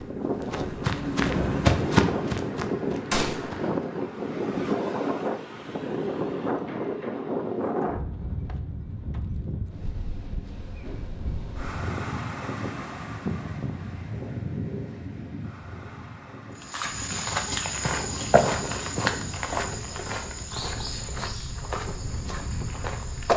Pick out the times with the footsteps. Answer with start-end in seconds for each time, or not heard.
0.0-3.8, 16.6-23.3.